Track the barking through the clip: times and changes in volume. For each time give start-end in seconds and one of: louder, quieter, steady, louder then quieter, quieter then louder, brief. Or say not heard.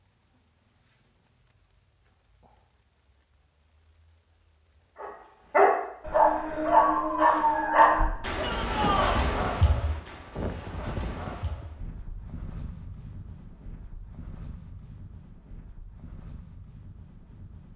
5.0-11.8 quieter.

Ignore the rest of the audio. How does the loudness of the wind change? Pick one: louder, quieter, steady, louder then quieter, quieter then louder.
quieter.